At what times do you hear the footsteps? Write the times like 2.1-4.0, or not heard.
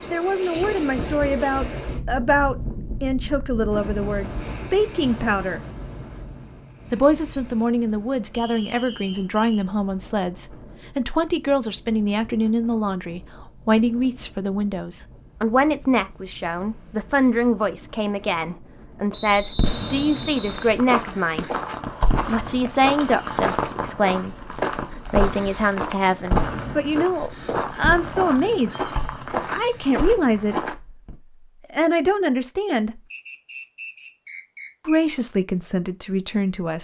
20.3-30.8.